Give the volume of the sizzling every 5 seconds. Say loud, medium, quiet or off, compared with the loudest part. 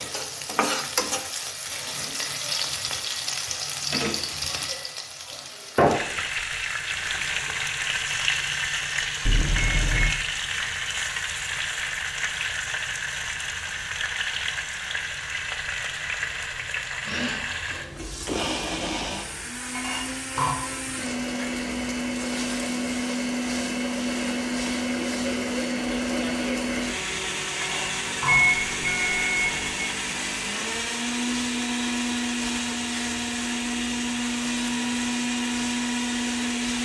loud, loud, loud, medium, medium, medium, quiet, quiet.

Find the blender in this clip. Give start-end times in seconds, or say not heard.
17.0-36.7.